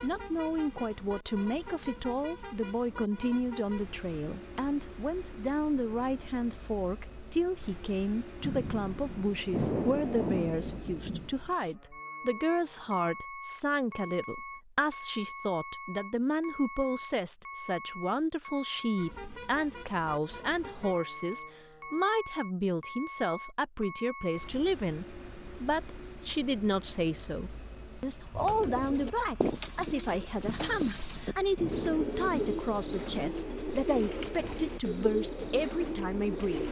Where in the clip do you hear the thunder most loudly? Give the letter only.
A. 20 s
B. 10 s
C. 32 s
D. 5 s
B.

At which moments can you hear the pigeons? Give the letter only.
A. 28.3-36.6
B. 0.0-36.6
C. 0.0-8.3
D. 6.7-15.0
A.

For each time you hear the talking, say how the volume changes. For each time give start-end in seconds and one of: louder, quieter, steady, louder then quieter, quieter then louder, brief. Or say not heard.
0.0-36.6 steady.